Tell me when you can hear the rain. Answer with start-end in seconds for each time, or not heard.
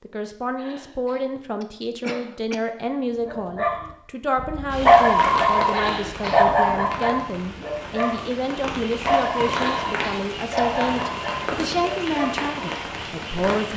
4.7-13.7.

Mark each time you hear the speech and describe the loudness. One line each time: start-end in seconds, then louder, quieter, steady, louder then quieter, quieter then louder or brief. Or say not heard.
0.0-13.7 steady.